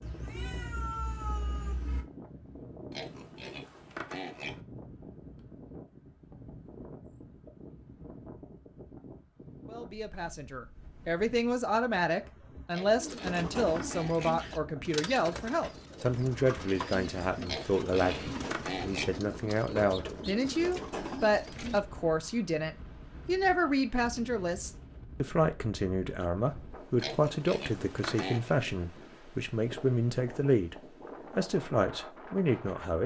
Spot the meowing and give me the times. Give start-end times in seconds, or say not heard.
0.0-2.0.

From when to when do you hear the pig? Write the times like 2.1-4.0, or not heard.
2.9-4.6, 12.7-14.4, 17.4-19.1, 26.9-28.6.